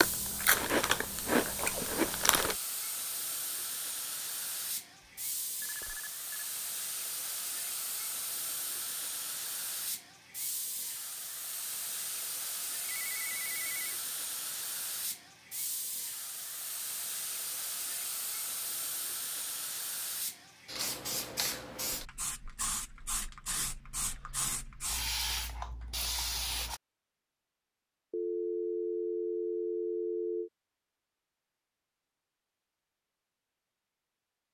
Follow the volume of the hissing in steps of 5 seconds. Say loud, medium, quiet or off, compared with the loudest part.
medium, medium, medium, medium, loud, loud, off.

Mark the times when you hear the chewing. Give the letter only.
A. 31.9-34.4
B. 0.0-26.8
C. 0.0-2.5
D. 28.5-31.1
C.